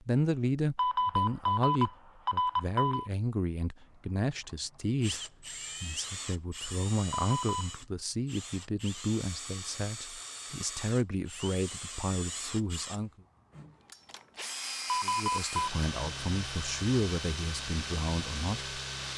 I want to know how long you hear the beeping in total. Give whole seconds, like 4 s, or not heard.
4 s.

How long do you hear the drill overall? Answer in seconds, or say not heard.
15 s.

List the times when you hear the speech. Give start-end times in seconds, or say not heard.
0.0-5.2, 5.8-13.1, 15.0-19.1.